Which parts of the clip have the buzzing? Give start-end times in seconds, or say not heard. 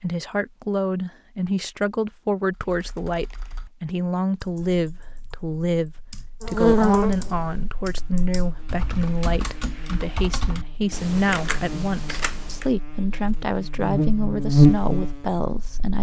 6.4-15.9.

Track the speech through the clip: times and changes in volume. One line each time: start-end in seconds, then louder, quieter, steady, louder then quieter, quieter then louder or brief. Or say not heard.
0.0-15.9 steady.